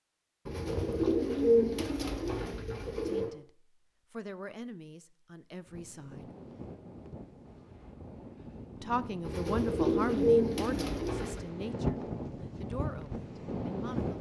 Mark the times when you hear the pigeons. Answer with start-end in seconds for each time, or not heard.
0.5-3.4, 9.2-11.5.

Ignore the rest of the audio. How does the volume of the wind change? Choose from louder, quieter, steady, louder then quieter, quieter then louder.
louder.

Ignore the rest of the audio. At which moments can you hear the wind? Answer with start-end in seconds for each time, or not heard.
5.7-14.1.